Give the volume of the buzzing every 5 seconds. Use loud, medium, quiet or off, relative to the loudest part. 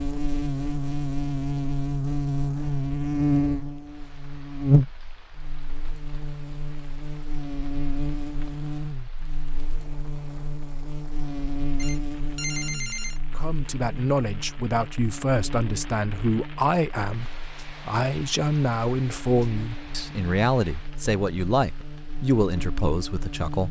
loud, medium, medium, quiet, quiet.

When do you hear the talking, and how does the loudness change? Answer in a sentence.
The talking can be heard from 13.3 to 23.6 s, at a steady volume.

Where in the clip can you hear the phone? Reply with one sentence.
The phone can be heard from 11.8 to 13.2 s.